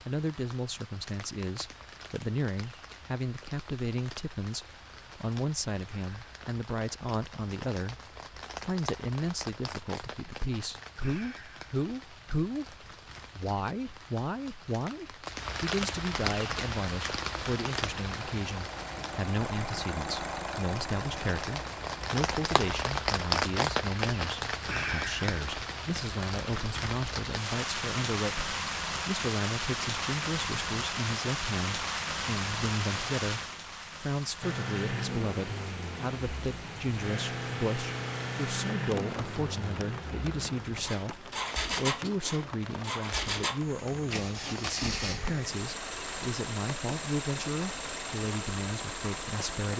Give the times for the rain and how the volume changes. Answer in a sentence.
You can hear the rain from 0.0 to 49.7 s, getting louder then quieter.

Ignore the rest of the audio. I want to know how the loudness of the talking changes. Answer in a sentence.
The loudness of the talking stays about the same.